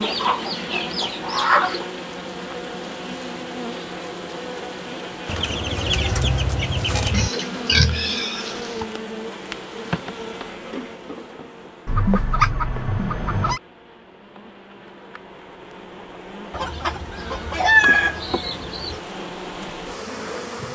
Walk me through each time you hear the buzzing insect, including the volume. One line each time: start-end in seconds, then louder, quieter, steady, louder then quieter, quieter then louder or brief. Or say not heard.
0.0-20.7 quieter then louder.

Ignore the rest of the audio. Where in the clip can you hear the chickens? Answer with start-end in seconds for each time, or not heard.
0.0-1.9, 5.2-7.3, 11.8-13.6, 16.5-19.0.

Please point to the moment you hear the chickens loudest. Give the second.
18 s.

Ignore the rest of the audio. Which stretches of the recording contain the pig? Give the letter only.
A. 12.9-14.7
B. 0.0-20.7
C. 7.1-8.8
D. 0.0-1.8
C.